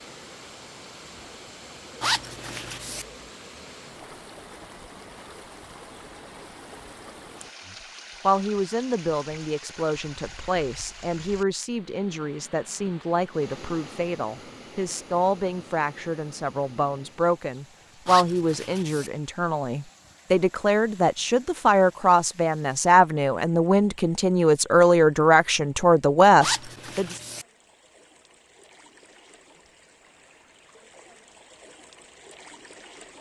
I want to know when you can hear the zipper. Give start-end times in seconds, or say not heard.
2.0-3.0, 18.1-19.1, 26.4-27.4.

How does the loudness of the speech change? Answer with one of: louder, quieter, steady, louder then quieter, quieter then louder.
louder.